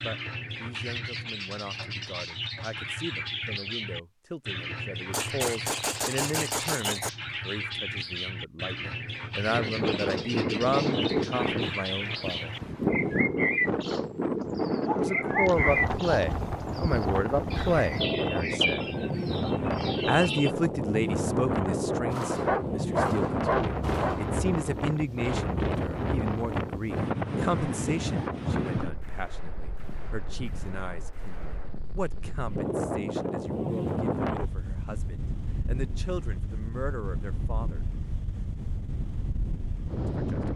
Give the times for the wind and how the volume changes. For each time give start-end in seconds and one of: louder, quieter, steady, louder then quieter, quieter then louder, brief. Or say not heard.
9.4-40.5 quieter.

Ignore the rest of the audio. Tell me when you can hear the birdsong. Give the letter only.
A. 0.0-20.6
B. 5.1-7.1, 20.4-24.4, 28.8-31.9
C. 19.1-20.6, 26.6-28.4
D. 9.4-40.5
A.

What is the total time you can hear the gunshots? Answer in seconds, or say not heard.
9 s.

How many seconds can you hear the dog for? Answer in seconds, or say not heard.
3 s.